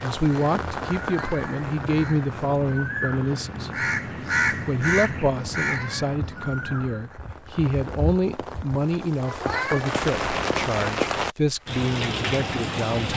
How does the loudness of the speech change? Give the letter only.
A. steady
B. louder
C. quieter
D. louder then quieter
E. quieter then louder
A.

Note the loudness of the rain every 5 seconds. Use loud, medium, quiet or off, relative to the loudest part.
medium, medium, loud.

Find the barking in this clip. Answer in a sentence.
You can't hear the barking here.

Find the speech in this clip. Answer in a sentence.
The speech can be heard from 0.0 to 3.7 s and from 4.5 to 13.1 s.